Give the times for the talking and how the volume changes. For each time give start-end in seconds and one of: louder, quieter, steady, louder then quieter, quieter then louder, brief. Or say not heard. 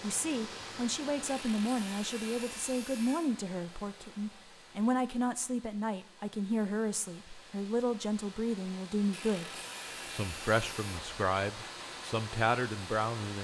0.0-13.4 steady.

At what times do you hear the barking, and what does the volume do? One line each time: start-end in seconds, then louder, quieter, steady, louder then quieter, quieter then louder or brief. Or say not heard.
not heard.